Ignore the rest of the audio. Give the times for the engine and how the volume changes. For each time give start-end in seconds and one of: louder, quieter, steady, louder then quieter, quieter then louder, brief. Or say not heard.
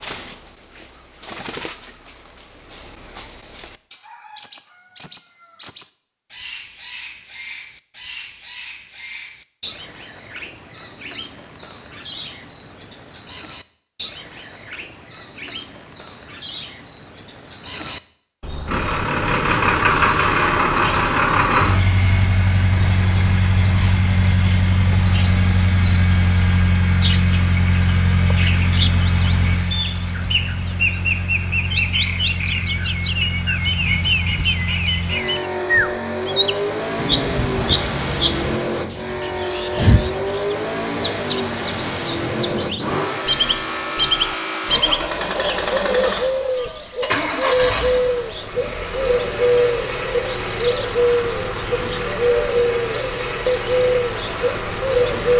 18.6-55.3 quieter.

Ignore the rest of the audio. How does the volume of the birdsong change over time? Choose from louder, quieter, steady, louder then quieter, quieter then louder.
louder.